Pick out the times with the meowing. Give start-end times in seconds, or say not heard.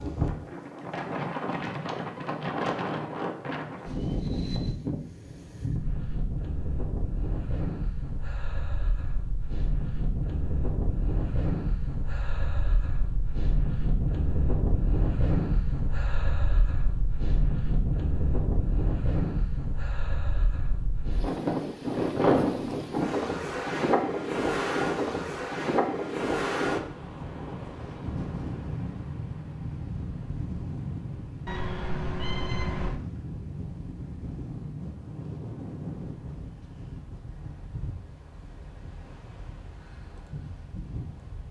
31.4-33.0.